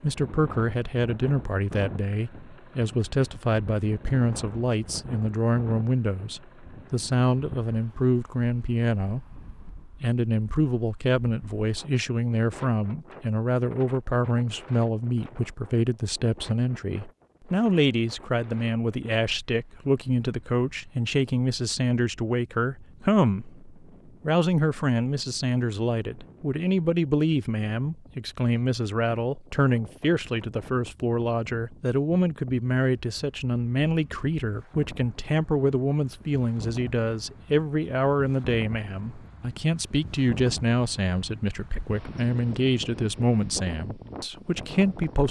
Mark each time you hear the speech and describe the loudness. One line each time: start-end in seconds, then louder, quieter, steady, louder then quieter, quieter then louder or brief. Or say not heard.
0.0-45.2 steady.